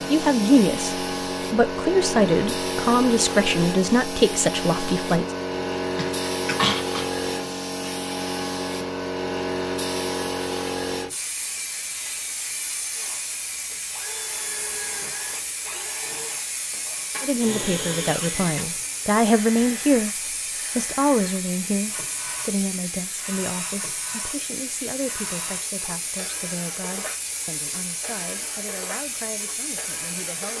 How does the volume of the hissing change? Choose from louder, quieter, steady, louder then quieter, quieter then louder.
quieter.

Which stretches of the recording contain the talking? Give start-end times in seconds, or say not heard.
0.1-5.2, 17.2-20.1, 20.8-30.5.